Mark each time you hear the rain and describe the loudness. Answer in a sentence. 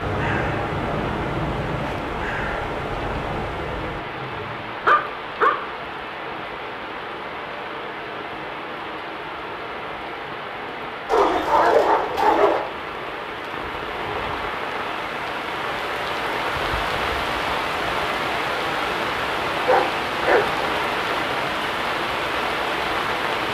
You can hear the rain from 0.0 to 23.5 s, getting louder.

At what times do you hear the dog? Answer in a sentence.
The dog can be heard from 4.0 to 5.5 s, from 11.1 to 12.7 s and from 19.6 to 20.5 s.